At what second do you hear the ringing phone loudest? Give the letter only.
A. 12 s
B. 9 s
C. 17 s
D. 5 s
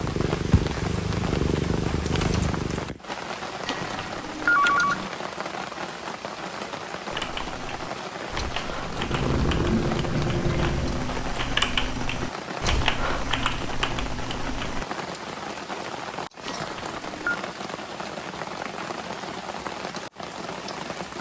D.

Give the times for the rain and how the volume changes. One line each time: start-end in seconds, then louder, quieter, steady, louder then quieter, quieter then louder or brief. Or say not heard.
0.0-21.1 steady.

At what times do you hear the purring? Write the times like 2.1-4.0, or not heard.
0.0-3.0, 8.8-11.2.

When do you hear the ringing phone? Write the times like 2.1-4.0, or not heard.
3.6-5.1, 16.4-17.4.